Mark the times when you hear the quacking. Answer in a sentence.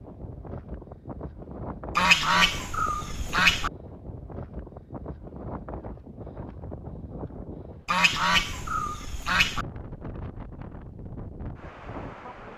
The quacking can be heard from 1.9 to 3.7 s and from 7.8 to 9.7 s.